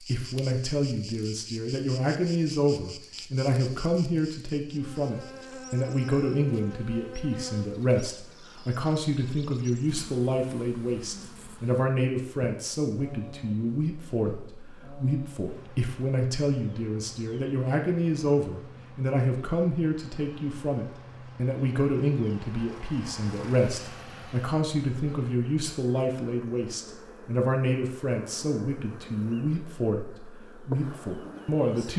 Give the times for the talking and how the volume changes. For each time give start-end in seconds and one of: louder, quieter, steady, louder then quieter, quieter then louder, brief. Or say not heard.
0.0-31.9 steady.